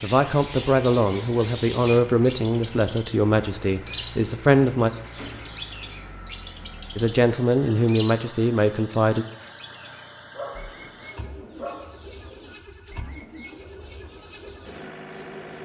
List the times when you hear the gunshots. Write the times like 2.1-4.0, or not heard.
5.2-5.6.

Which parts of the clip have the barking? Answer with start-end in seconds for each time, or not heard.
10.3-11.8.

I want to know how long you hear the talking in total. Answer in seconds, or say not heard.
7 s.